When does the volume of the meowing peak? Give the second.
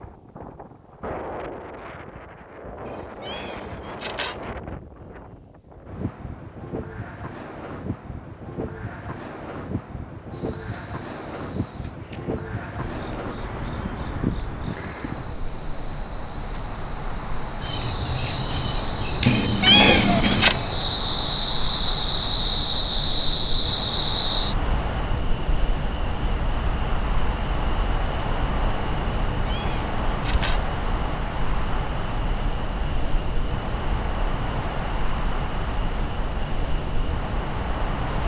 20 s.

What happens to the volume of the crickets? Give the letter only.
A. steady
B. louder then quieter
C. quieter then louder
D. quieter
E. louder
D.